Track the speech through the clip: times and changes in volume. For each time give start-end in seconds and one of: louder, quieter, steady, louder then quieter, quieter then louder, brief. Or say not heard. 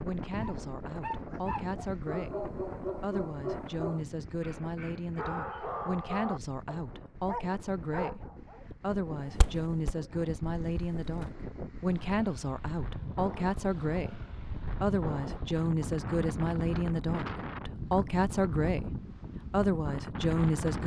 0.0-20.8 louder.